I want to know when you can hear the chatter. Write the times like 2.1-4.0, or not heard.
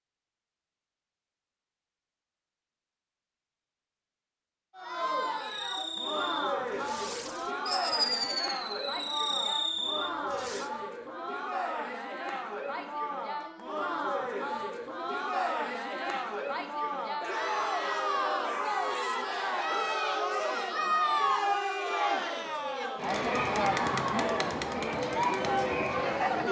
4.8-26.4.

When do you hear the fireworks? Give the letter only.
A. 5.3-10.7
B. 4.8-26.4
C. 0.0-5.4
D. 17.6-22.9
A.